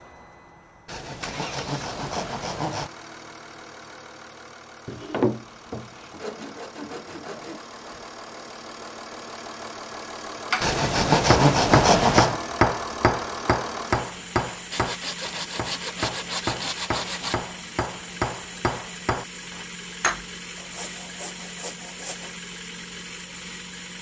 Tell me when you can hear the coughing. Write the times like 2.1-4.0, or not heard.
not heard.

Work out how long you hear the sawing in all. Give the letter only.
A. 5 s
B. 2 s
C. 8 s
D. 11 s
D.